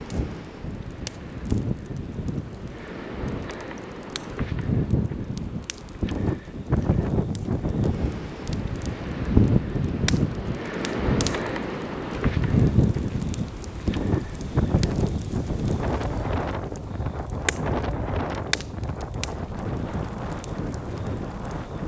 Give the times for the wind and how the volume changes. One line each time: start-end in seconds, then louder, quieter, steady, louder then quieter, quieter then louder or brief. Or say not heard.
0.0-21.8 louder then quieter.